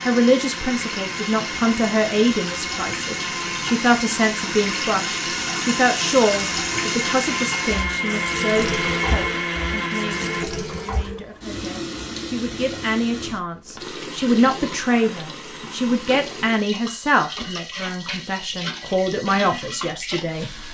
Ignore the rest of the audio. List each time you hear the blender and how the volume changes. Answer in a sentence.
The blender can be heard from 0.0 to 10.4 s, getting louder.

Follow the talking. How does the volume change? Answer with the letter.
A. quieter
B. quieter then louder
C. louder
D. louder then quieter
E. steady
B.